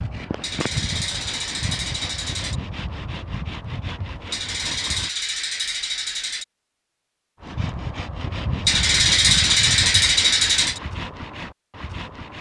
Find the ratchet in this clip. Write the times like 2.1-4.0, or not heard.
0.4-2.6, 4.3-6.5, 8.7-10.8.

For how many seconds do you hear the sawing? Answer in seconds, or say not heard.
10 s.